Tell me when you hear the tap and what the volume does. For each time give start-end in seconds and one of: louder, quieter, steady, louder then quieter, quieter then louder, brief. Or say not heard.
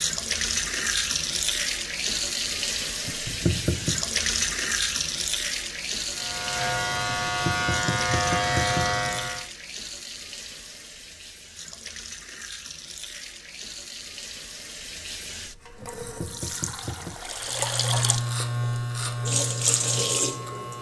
0.0-20.7 quieter then louder.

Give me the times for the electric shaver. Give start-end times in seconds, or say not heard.
6.1-9.4, 17.5-20.7.